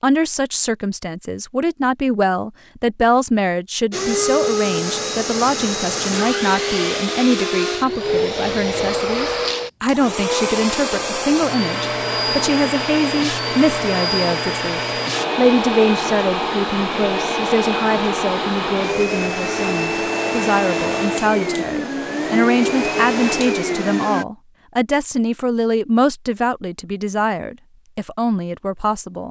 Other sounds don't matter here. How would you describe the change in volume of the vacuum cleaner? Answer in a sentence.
The volume of the vacuum cleaner stays about the same.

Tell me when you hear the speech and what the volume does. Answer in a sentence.
You can hear the speech from 0.0 to 29.2 s, at a steady volume.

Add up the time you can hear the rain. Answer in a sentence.
The rain can't be heard in this clip.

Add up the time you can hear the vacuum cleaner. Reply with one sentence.
The vacuum cleaner can be heard for 20 seconds in total.